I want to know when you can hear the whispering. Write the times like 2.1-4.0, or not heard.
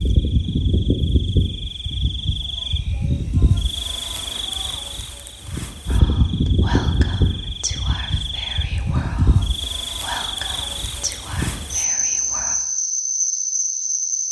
5.8-12.6.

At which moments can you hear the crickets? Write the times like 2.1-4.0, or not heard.
0.0-14.2.